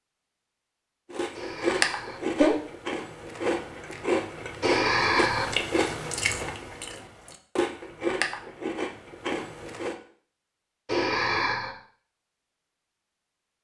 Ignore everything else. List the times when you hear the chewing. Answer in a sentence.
The chewing can be heard from 1.1 to 9.9 s.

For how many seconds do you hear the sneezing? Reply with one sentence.
You can hear the sneezing for 3 seconds altogether.